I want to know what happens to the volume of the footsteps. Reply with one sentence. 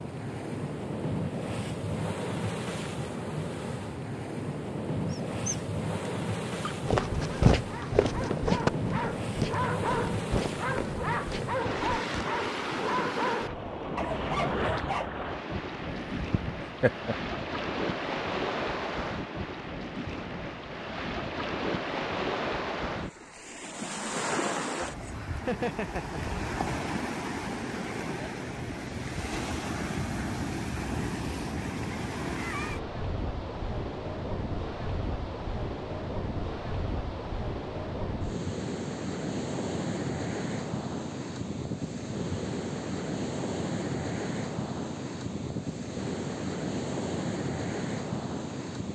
The volume of the footsteps goes down.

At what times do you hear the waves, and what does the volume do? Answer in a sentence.
The waves can be heard from 0.0 to 48.9 s, at a steady volume.